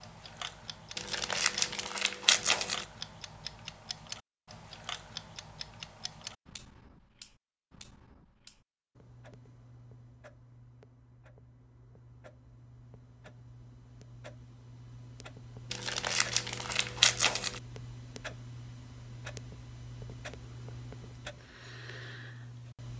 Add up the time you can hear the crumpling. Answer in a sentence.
The crumpling can be heard for 4 seconds in total.